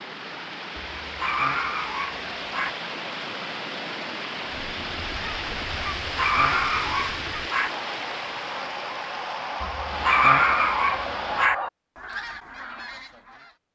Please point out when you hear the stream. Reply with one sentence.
The stream can be heard from 0.0 to 11.5 s.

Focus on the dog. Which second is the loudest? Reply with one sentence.
The volume of the dog peaks at 10 seconds.